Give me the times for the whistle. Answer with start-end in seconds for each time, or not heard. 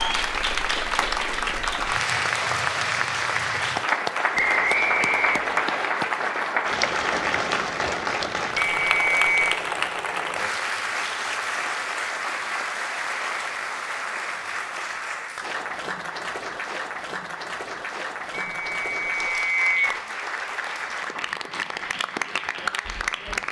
4.3-5.9, 8.8-9.6, 18.4-20.0.